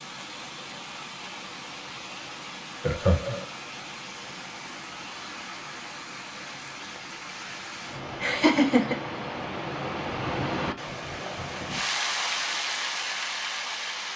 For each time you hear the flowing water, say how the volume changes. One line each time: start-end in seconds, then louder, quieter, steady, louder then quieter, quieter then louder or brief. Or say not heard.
0.0-14.1 louder.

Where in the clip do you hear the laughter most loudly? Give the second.
9 s.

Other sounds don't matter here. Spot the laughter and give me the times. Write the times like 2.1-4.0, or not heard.
2.8-3.5, 8.2-9.0.